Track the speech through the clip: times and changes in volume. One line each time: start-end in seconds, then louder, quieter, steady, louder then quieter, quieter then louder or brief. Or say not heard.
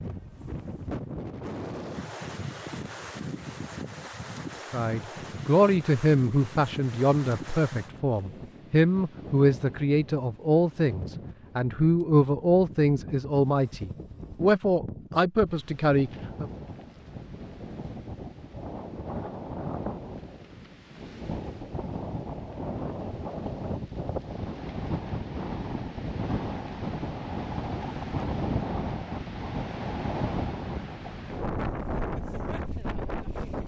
4.7-16.5 steady.